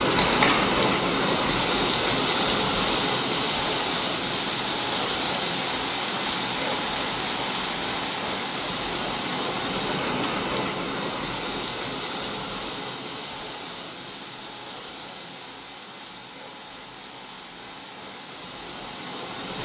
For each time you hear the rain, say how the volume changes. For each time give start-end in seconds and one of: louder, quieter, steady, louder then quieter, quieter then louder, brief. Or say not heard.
0.0-19.6 quieter.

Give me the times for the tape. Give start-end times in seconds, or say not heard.
0.1-0.6.